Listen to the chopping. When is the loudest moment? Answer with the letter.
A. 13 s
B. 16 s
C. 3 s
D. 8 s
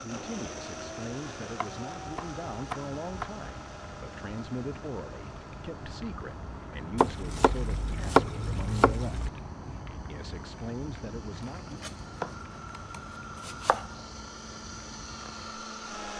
D.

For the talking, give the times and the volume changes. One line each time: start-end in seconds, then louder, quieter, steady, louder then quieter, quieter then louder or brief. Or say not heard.
0.0-9.3 steady
10.1-11.8 brief.